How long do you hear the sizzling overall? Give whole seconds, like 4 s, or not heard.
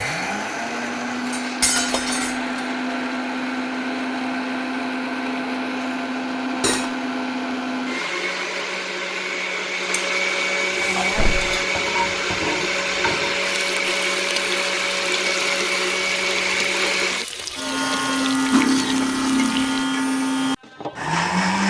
9 s.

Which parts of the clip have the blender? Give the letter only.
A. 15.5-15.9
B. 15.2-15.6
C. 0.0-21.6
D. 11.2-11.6
C.